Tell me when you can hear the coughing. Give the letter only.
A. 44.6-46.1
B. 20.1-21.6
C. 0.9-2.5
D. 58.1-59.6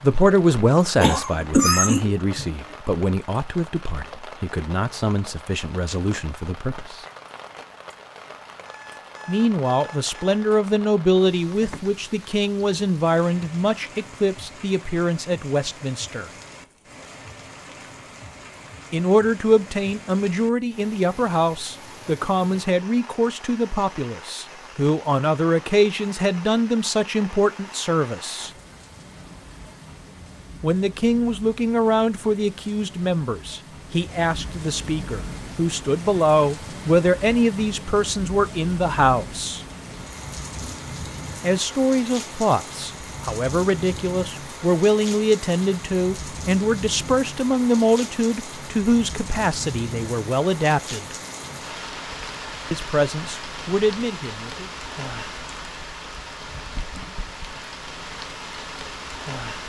C.